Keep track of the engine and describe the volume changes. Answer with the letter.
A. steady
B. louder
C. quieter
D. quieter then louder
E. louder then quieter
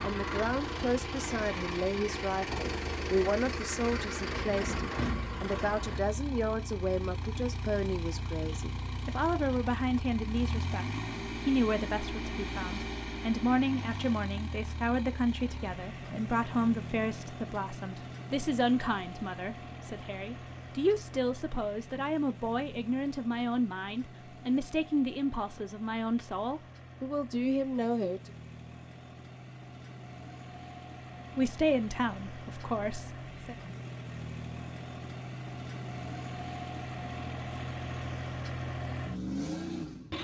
D.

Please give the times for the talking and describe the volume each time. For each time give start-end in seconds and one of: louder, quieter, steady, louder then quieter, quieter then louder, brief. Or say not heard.
0.0-28.3 steady
31.4-33.5 brief.